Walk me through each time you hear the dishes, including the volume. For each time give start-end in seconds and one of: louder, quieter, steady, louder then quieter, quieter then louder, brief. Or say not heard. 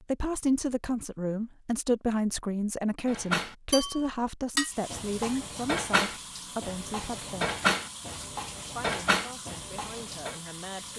3.0-10.3 quieter then louder.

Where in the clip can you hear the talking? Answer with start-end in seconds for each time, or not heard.
0.1-7.5, 8.8-10.9.